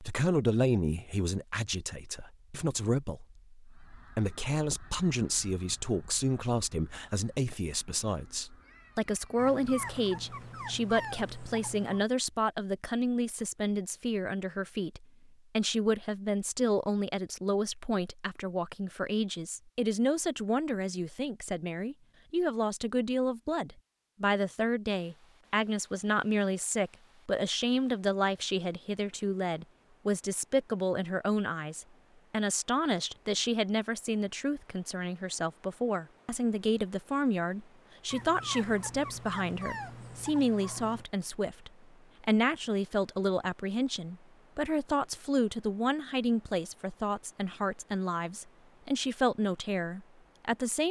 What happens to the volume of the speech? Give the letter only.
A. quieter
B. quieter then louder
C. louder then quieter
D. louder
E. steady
E.